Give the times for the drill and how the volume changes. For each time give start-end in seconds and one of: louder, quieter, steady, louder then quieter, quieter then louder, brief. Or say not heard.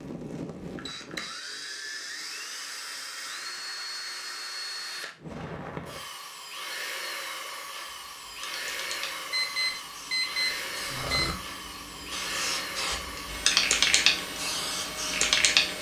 0.0-15.7 steady.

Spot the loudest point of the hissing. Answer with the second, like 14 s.
14 s.